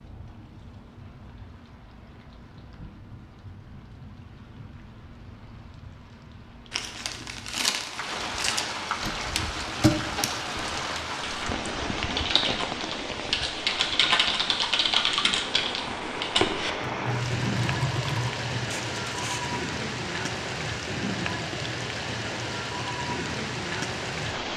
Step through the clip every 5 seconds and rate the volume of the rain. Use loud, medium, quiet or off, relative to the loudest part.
quiet, medium, loud, loud, loud.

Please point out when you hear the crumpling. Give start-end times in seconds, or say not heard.
6.7-8.7, 18.7-19.5.